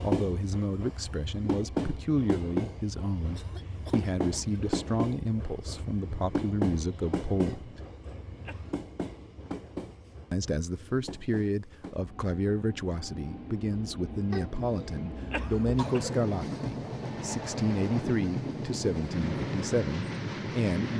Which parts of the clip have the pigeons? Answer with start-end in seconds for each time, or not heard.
not heard.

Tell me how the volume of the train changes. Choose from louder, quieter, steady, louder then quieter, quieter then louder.
quieter then louder.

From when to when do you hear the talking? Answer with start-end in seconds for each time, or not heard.
0.0-7.8, 10.3-20.9.